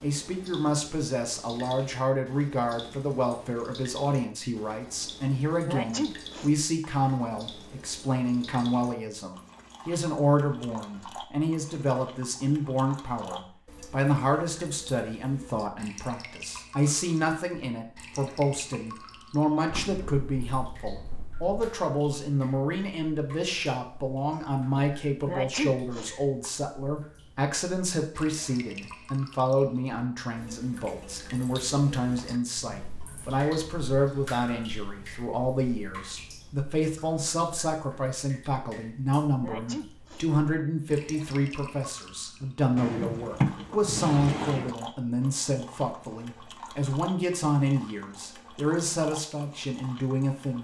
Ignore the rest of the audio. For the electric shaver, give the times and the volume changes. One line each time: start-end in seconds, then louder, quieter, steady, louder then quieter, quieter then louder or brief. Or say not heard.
not heard.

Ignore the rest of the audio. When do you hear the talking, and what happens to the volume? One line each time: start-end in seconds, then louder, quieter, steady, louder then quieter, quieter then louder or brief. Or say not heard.
0.0-50.5 steady.